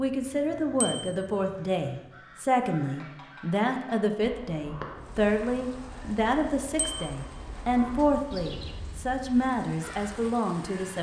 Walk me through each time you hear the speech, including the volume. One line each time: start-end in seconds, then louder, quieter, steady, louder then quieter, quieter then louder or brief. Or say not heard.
0.0-10.9 steady.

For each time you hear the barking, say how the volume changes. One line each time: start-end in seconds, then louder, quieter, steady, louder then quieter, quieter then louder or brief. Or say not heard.
not heard.